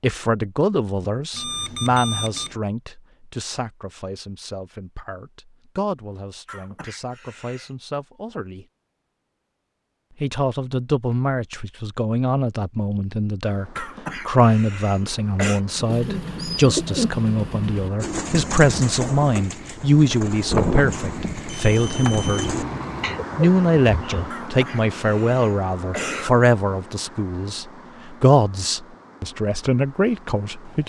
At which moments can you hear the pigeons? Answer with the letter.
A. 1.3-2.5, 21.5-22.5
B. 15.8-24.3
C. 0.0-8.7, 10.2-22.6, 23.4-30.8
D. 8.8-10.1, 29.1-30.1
B.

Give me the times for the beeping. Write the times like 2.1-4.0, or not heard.
1.3-2.5, 21.5-22.5.